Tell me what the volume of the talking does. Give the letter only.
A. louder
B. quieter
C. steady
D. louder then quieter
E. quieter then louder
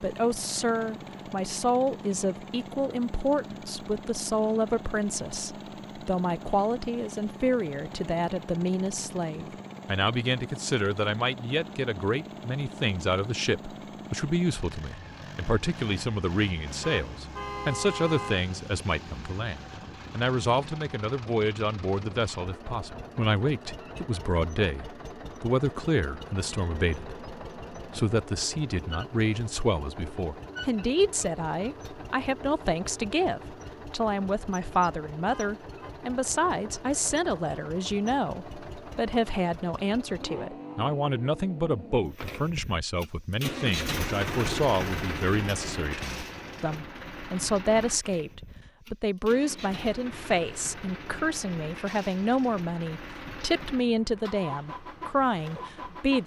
C.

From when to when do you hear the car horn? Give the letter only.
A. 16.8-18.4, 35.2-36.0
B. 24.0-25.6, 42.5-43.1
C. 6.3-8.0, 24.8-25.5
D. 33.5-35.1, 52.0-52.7
A.